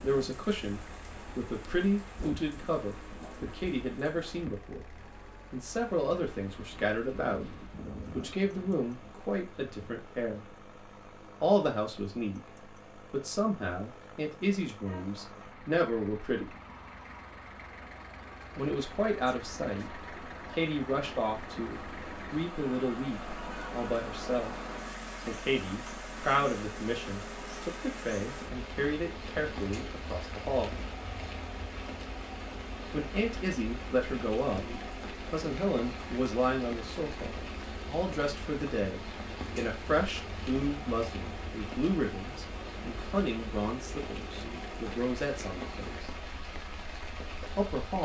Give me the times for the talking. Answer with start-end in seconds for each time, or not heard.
0.0-10.6, 11.4-16.5, 18.6-24.6, 25.2-30.8, 32.9-46.1, 47.4-47.9.